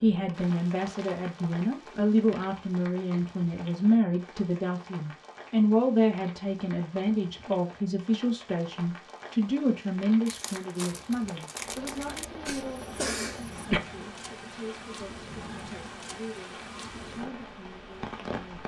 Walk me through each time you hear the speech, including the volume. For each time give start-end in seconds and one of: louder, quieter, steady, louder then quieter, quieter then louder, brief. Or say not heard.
0.0-18.6 quieter.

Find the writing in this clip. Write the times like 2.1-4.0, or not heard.
not heard.